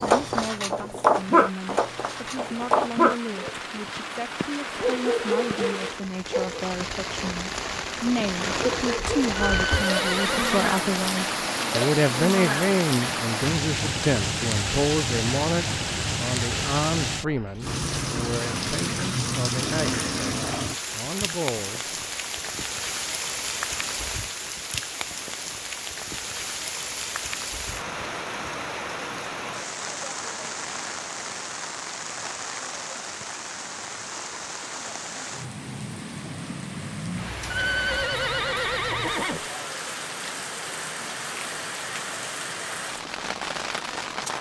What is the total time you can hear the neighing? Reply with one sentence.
You can hear the neighing for 3 seconds altogether.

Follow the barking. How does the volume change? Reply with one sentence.
The volume of the barking goes down.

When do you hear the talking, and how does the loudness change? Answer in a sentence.
You can hear the talking from 0.0 to 21.9 s, getting louder then quieter.